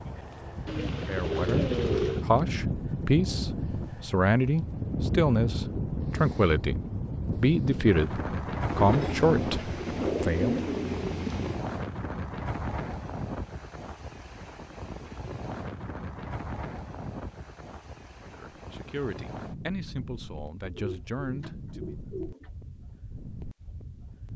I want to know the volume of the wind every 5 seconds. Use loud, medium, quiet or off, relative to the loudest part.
loud, loud, medium, medium, quiet.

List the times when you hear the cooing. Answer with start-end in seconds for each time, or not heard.
0.7-2.2, 8.7-11.6, 20.7-22.5.